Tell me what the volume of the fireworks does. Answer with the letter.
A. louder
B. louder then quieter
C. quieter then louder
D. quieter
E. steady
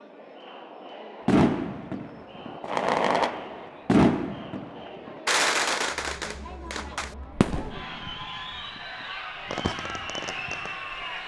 D.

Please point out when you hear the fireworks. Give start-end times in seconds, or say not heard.
1.2-10.8.